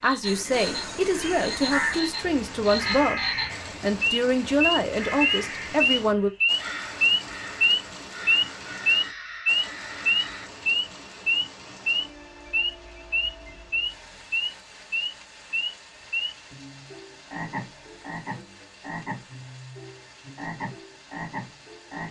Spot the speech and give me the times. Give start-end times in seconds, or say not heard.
0.0-3.2, 3.8-6.3.